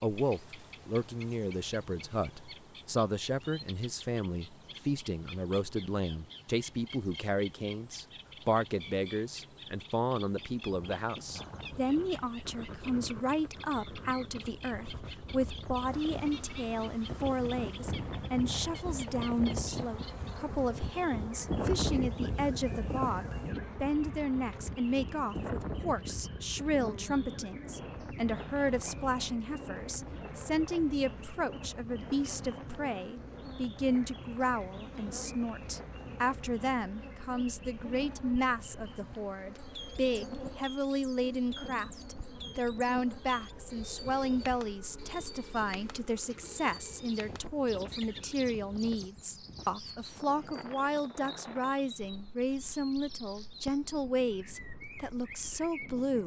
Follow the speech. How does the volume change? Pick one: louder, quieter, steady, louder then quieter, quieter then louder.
steady.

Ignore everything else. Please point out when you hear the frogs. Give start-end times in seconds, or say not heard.
not heard.